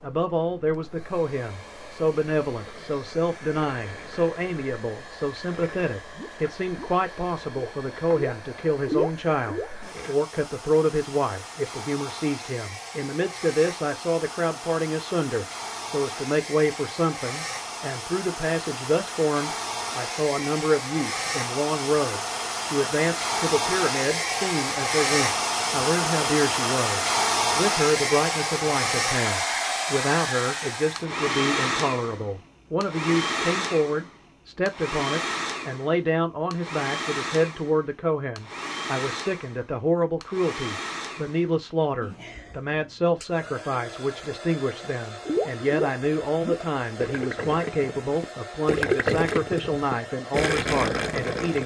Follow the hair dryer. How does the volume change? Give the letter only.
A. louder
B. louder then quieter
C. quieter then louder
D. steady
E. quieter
B.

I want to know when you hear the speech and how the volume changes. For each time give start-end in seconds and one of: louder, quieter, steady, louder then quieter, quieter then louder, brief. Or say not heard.
0.0-51.6 steady.